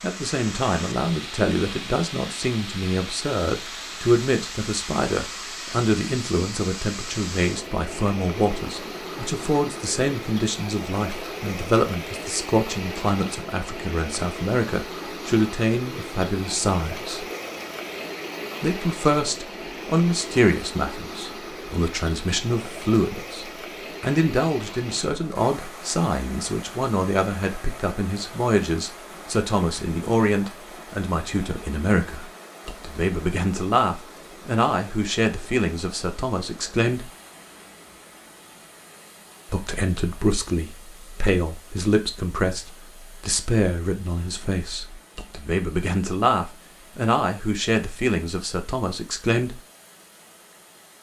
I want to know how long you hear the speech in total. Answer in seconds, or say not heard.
46 s.